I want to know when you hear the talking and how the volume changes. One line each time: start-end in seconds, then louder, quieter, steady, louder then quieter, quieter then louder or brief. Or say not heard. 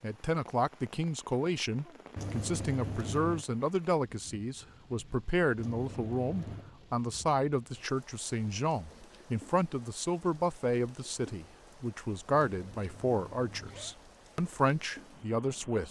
0.0-15.8 steady.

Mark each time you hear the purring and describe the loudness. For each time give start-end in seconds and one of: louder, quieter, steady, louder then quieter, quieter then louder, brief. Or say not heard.
not heard.